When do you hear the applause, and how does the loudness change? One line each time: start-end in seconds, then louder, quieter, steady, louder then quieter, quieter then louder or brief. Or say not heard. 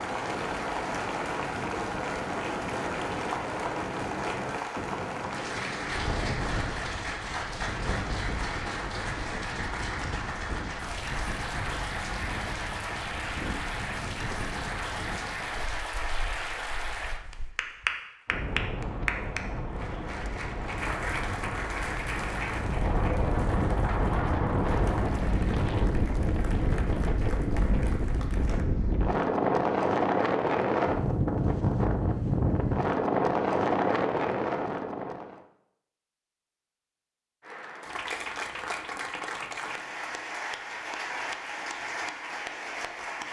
0.0-28.6 quieter
37.4-43.2 steady.